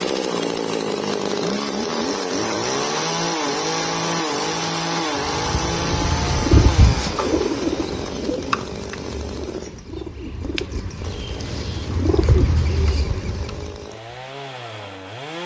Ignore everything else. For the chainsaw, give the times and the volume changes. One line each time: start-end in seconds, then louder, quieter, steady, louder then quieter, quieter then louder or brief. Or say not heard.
0.0-15.4 quieter.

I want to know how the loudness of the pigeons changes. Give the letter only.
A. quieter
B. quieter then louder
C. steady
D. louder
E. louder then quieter
B.